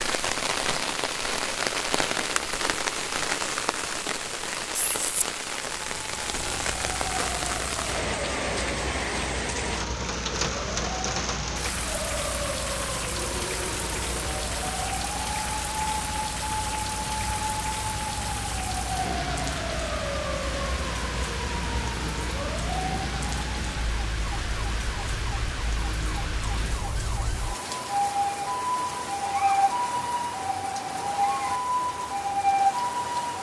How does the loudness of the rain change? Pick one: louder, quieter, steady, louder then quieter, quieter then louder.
quieter.